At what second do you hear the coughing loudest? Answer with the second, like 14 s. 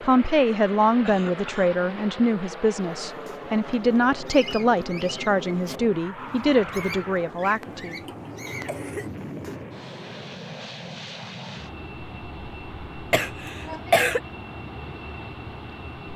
14 s.